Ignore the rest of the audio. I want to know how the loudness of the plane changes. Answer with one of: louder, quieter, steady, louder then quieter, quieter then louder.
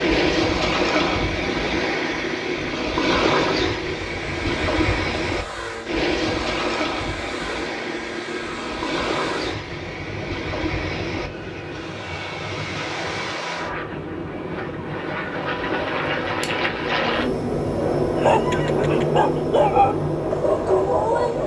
louder.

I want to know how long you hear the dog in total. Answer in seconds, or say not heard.
3 s.